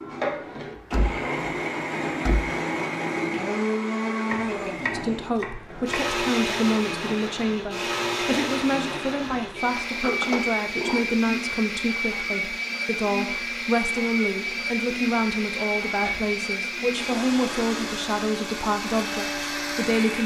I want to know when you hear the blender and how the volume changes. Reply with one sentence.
You can hear the blender from 0.0 to 20.2 s, at a steady volume.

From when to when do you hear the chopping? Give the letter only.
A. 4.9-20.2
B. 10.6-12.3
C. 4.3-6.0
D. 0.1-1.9
C.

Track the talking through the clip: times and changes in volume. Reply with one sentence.
You can hear the talking from 4.9 to 20.2 s, at a steady volume.